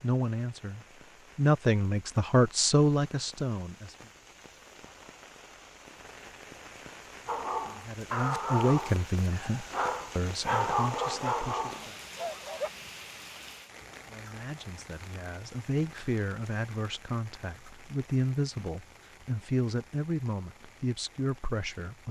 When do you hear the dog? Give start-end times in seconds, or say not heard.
7.2-12.7.